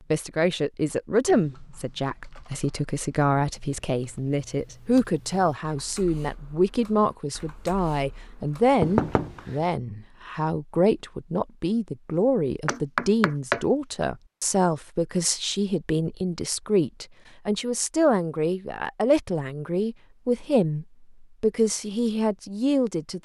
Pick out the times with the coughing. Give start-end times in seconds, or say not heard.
not heard.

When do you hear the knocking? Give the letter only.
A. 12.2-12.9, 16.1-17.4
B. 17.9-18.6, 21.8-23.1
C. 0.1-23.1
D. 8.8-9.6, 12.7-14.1
D.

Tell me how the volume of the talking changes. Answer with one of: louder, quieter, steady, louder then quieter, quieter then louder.
steady.